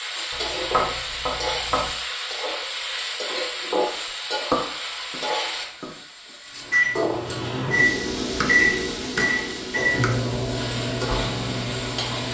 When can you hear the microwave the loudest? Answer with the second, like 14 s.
8 s.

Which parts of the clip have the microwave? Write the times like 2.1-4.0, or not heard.
6.7-12.2.